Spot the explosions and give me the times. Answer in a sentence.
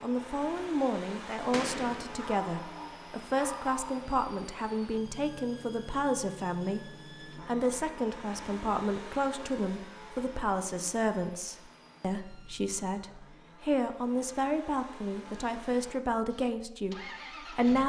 The explosions can be heard from 1.5 to 2.2 s.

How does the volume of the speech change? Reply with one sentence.
The volume of the speech stays about the same.